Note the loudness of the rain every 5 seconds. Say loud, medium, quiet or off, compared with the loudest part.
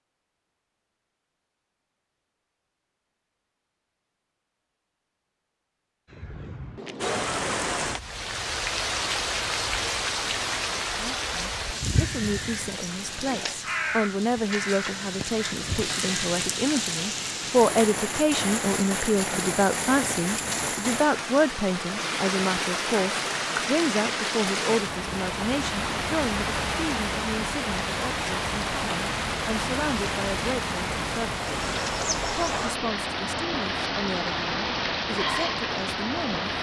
off, loud, loud, loud, loud, loud, loud, loud.